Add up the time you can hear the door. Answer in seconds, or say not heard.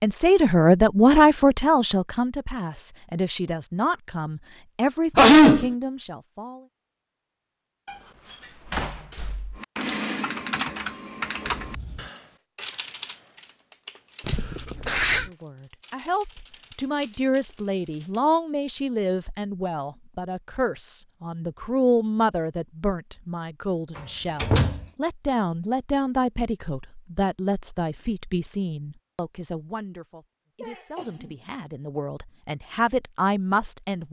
3 s.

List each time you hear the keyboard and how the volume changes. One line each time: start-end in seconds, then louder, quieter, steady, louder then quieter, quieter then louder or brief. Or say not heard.
9.6-18.2 quieter then louder.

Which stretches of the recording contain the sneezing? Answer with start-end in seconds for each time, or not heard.
5.2-5.7, 14.2-15.3, 30.6-31.3.